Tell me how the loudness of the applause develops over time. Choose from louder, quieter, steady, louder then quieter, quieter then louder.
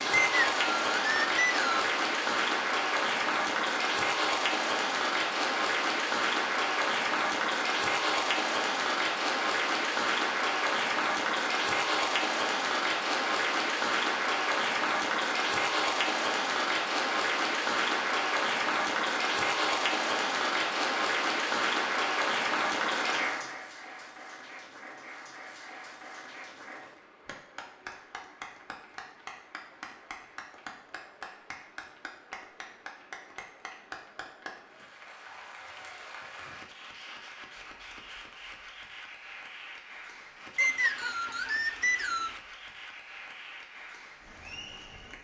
quieter.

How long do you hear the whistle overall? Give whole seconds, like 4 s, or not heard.
4 s.